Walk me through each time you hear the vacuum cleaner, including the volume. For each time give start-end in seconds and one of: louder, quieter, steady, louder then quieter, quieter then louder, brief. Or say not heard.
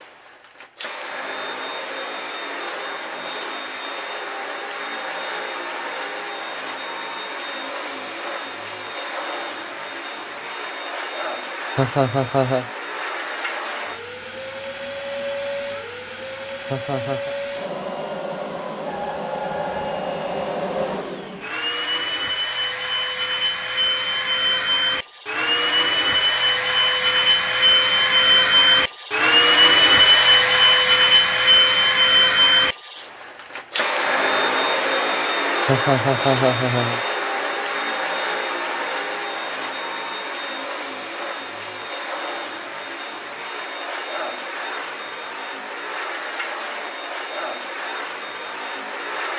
0.0-49.3 louder then quieter.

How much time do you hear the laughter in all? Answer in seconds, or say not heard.
3 s.